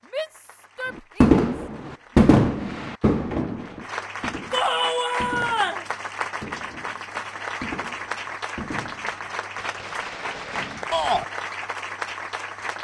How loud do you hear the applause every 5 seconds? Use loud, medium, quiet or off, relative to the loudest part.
medium, loud, loud.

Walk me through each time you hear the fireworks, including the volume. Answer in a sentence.
You can hear the fireworks from 0.9 to 10.9 s, getting quieter.